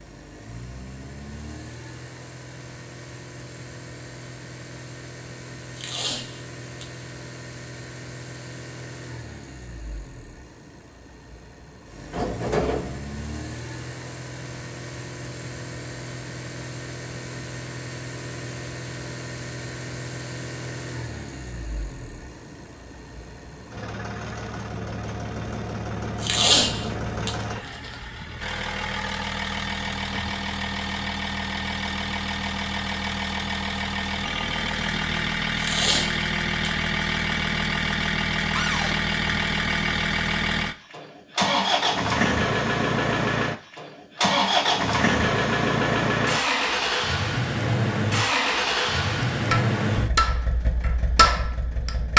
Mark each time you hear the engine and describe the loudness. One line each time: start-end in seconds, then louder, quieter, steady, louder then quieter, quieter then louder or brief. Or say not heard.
0.0-52.1 louder.